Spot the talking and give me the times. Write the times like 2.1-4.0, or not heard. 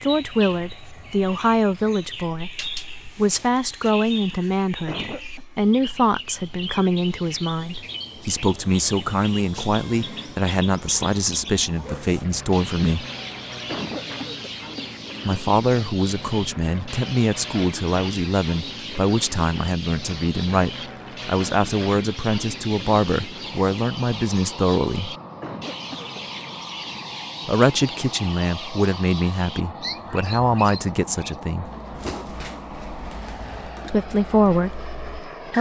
0.0-13.1, 15.2-25.1, 27.4-31.7, 33.9-35.5.